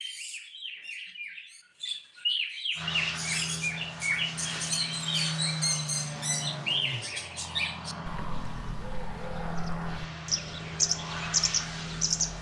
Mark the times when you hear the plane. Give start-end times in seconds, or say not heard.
2.8-12.3.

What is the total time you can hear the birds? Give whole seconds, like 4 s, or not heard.
12 s.